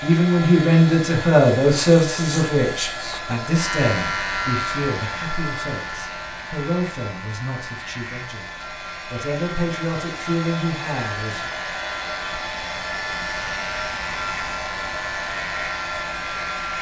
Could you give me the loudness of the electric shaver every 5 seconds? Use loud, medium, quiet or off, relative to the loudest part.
loud, medium, loud, loud.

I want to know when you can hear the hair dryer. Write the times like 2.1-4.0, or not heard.
0.0-16.7.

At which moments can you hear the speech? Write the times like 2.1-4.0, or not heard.
0.0-11.5.